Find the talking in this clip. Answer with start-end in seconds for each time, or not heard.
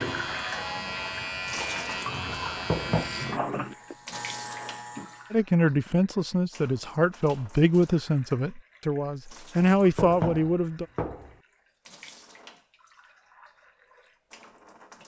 5.3-10.8.